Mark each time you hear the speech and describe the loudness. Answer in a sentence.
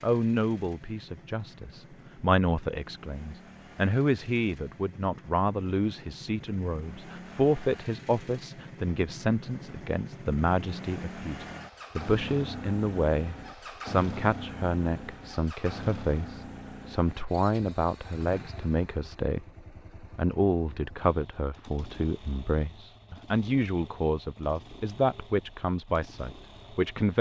The speech can be heard from 0.0 to 27.1 s, at a steady volume.